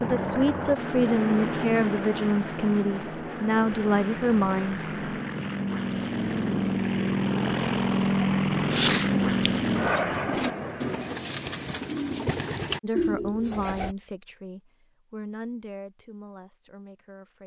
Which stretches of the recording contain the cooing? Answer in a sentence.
You can hear the cooing from 8.7 to 13.9 s.